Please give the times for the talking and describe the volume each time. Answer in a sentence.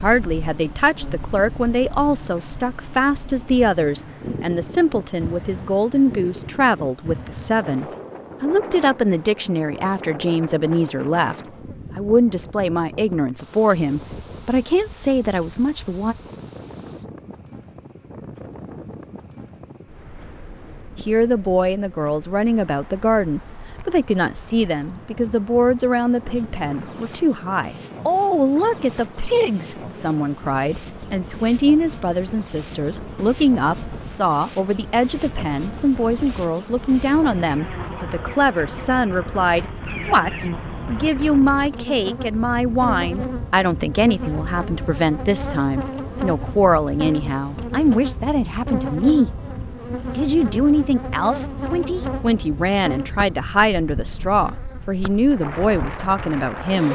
You can hear the talking from 0.0 to 11.3 s, at a steady volume; from 11.9 to 16.1 s, at a steady volume; from 20.9 to 49.3 s, at a steady volume; and from 50.1 to 56.9 s, at a steady volume.